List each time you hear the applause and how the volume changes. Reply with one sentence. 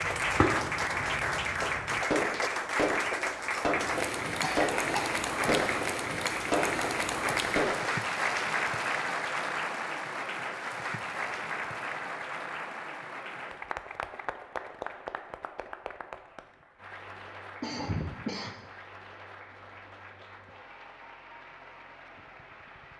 The applause can be heard from 0.0 to 22.9 s, getting quieter.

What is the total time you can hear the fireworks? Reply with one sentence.
The fireworks can be heard for 8 seconds in total.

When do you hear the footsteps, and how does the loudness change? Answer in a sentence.
You can't hear the footsteps here.